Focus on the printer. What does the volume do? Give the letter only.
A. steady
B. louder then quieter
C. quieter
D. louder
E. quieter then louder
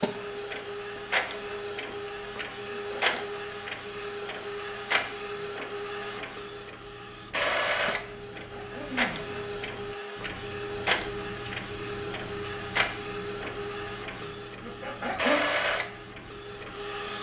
A.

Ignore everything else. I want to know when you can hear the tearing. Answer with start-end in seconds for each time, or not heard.
not heard.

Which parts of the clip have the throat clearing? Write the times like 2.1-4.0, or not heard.
2.7-3.2, 8.3-9.4, 14.6-15.4.